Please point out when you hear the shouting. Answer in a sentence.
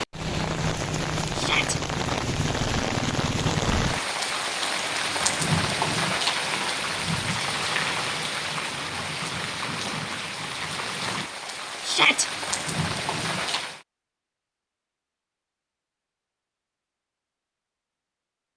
The shouting can be heard from 1.3 to 1.8 s and from 11.8 to 12.2 s.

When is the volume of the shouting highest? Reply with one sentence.
The loudest moment of the shouting is at 12 seconds.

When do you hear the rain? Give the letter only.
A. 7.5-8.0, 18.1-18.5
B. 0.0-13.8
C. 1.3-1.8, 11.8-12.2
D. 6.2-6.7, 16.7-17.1
B.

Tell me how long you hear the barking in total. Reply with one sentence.
You can't hear the barking here.